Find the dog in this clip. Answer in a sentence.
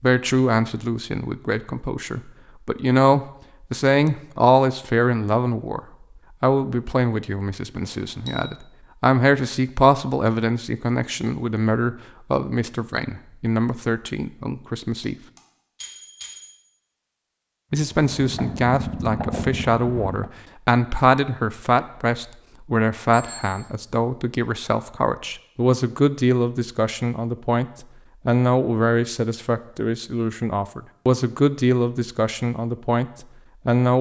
You can't hear the dog here.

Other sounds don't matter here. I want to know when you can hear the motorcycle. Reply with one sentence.
You can hear the motorcycle from 17.9 to 20.3 s.